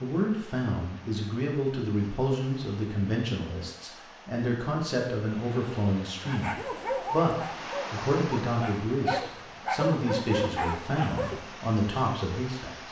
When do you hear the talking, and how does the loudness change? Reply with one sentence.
You can hear the talking from 0.0 to 12.8 s, at a steady volume.